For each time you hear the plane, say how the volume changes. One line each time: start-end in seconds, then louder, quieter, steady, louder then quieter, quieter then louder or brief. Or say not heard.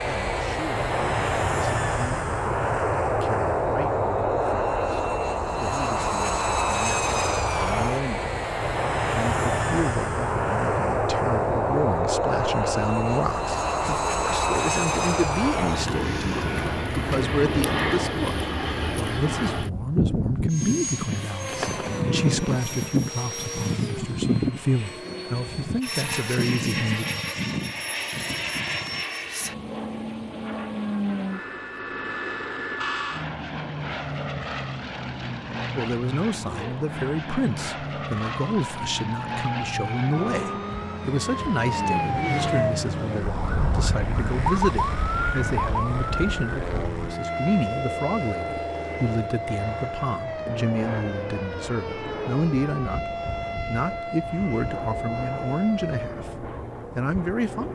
0.0-57.6 quieter.